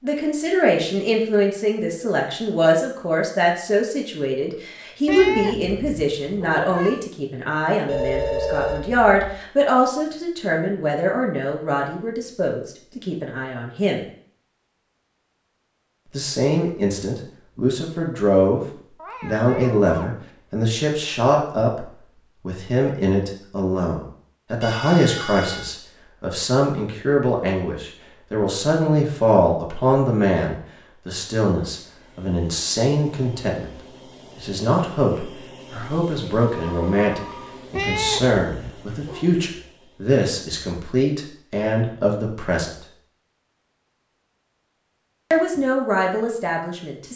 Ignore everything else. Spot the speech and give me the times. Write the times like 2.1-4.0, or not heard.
0.0-14.1, 16.1-42.9, 45.3-47.1.